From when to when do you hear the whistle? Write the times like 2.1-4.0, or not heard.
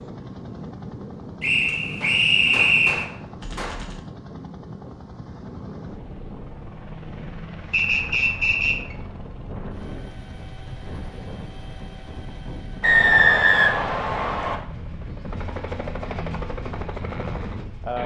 1.4-3.0, 7.7-8.8, 12.8-14.6.